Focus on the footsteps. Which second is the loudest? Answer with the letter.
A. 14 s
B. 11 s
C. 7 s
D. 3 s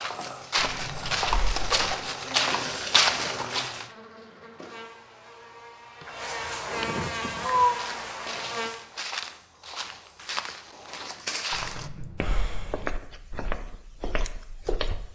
D.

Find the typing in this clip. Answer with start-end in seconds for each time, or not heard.
not heard.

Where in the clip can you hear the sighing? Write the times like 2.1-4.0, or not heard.
0.6-1.9, 6.0-7.8, 11.5-12.9.